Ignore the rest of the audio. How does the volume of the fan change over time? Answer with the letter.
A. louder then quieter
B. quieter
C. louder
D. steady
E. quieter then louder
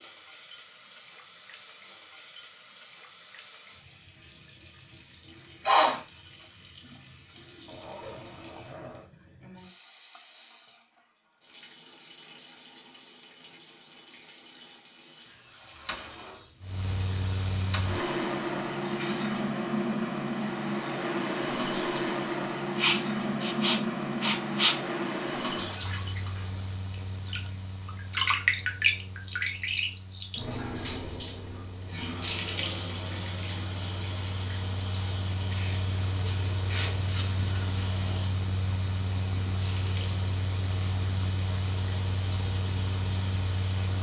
E.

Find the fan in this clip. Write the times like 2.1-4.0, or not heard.
16.6-43.9.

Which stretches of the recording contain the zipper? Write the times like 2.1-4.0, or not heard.
7.7-9.1.